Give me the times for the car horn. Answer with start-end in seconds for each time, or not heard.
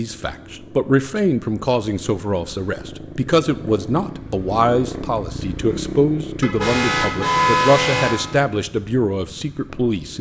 6.4-8.2.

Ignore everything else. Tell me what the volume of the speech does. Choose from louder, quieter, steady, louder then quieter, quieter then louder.
steady.